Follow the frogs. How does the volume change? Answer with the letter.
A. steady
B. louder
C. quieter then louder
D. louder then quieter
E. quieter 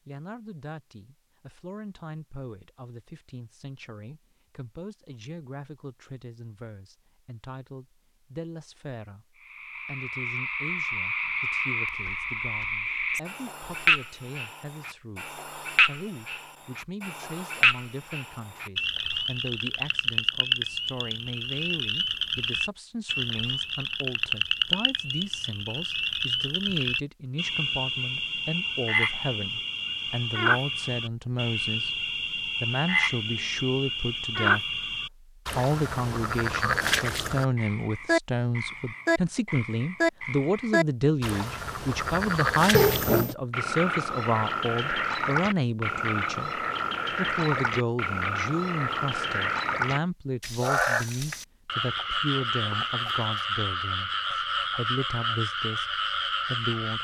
A.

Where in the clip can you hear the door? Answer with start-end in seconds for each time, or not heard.
42.7-43.4.